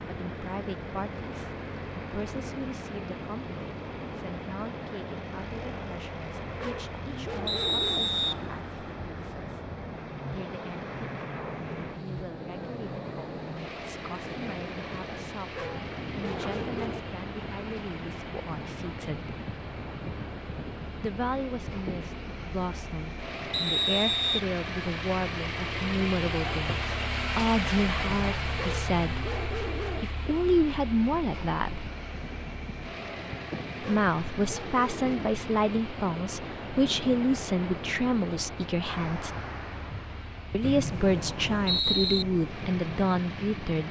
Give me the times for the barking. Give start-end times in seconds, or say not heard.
6.5-8.1, 15.5-17.1, 28.6-30.1, 33.8-35.3.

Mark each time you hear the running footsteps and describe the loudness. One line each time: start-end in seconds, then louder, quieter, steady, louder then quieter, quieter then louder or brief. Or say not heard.
not heard.